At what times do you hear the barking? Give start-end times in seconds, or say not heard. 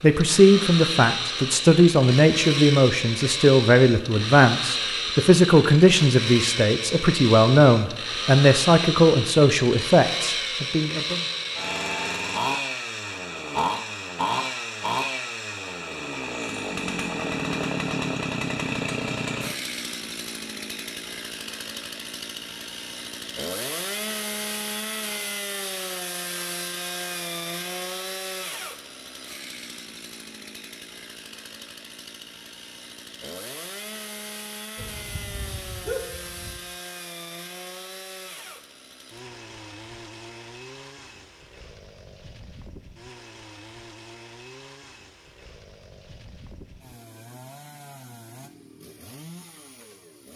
34.8-36.6.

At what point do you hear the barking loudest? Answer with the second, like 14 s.
36 s.